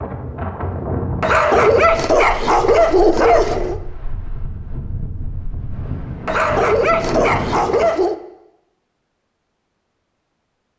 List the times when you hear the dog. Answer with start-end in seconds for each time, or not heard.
1.2-3.8, 6.2-8.2.